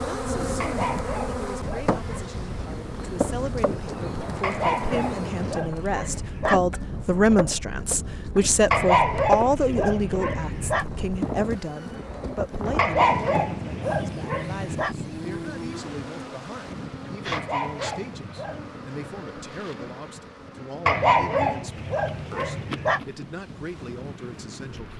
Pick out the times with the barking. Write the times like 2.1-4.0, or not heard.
0.6-2.4, 4.4-6.6, 8.7-10.8, 12.8-14.9, 17.3-18.7, 20.9-23.0.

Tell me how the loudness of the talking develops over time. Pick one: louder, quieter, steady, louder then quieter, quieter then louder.
louder then quieter.